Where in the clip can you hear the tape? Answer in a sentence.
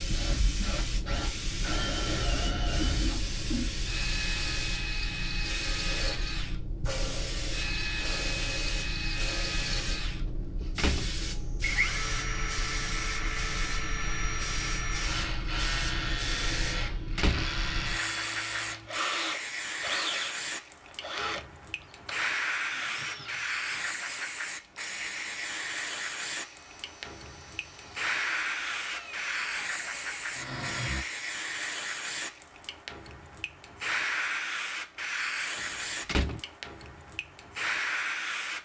The tape can't be heard in this clip.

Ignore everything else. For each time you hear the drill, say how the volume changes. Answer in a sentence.
The drill can be heard from 0.0 to 31.1 s, getting quieter.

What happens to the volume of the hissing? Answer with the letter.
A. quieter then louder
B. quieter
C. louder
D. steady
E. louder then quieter
D.